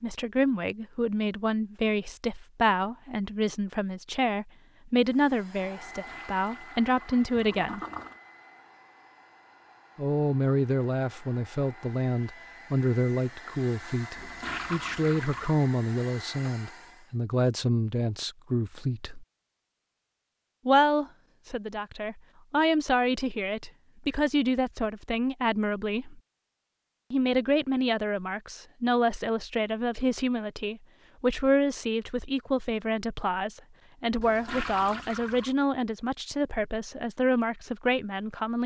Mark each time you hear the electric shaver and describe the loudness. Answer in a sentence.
You can't hear the electric shaver here.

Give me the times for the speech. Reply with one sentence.
The speech can be heard from 0.0 to 7.8 s, from 9.9 to 19.2 s, from 20.6 to 26.2 s and from 27.1 to 38.6 s.